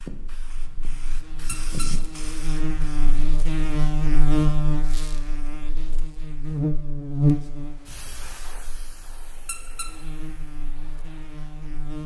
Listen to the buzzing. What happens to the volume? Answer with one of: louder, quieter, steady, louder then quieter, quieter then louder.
louder then quieter.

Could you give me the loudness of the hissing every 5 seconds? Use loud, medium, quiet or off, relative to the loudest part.
loud, medium, quiet.